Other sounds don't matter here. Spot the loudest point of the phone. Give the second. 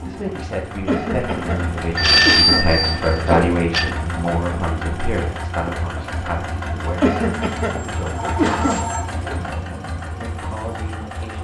2 s.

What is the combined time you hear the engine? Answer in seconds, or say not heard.
11 s.